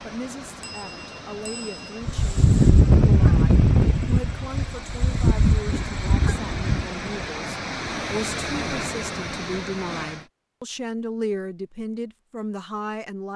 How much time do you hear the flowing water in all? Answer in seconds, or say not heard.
10 s.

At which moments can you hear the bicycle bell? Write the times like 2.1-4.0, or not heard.
0.6-2.0.